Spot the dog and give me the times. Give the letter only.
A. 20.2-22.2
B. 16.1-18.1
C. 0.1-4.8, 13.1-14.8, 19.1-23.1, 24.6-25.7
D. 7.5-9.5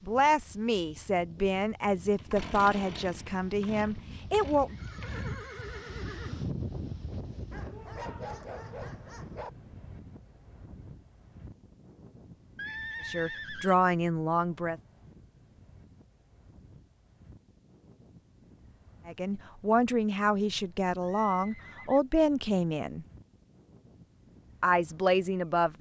D.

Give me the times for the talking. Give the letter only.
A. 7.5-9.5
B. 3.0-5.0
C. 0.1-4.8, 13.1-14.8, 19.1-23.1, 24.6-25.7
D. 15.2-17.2
C.